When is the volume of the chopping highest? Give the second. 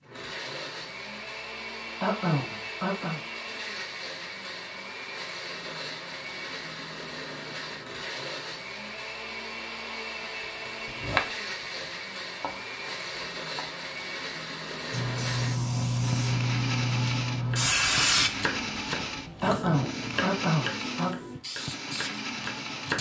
11 s.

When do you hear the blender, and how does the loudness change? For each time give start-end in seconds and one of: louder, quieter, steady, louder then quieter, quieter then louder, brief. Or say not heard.
0.0-22.9 steady.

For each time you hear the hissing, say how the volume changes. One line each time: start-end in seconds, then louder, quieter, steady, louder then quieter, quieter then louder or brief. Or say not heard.
14.9-22.9 quieter.